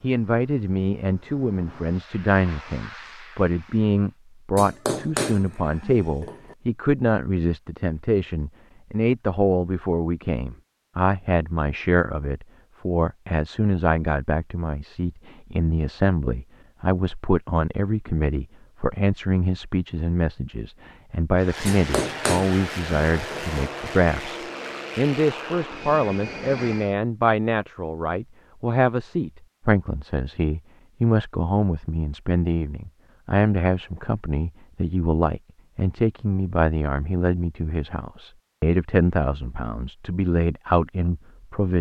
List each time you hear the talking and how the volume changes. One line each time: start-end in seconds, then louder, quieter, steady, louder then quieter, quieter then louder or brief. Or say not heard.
0.0-41.7 steady.